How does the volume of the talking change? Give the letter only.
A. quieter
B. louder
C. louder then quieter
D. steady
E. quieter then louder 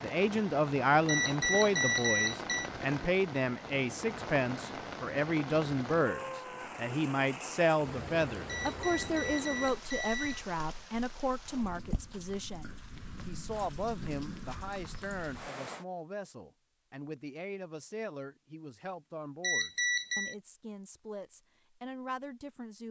A.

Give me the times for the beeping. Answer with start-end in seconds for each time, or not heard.
1.1-2.7, 8.4-10.4, 19.4-20.4.